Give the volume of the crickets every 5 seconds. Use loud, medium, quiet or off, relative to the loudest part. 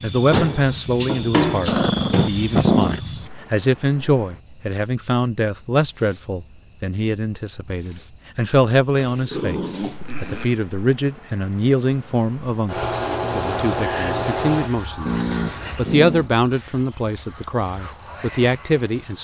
loud, loud, loud, medium.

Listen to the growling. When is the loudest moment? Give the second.
3 s.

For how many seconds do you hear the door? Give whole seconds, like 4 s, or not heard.
2 s.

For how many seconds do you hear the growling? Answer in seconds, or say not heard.
4 s.